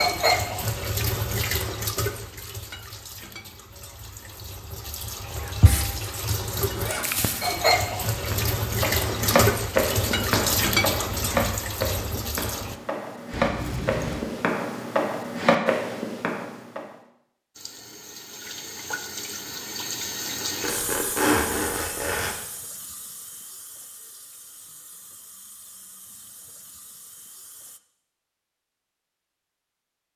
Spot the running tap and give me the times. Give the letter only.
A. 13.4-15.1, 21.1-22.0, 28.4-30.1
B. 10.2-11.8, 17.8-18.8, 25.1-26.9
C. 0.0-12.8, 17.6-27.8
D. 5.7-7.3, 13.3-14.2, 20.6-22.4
C.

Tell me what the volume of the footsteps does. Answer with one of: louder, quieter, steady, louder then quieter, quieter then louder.
quieter then louder.